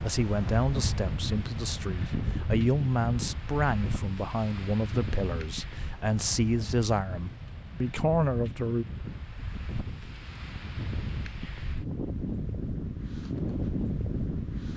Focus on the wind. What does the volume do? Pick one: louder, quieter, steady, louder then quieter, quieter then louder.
quieter then louder.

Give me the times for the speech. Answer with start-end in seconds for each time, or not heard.
0.0-8.8.